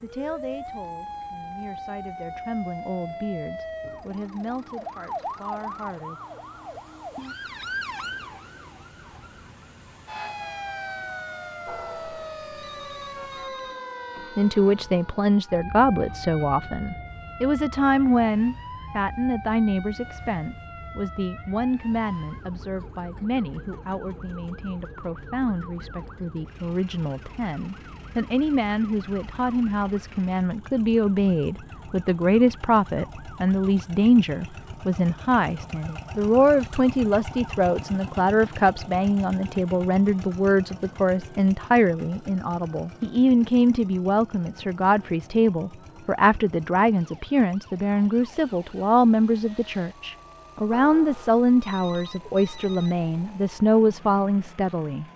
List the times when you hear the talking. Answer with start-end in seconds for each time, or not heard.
0.0-6.2, 14.3-55.0.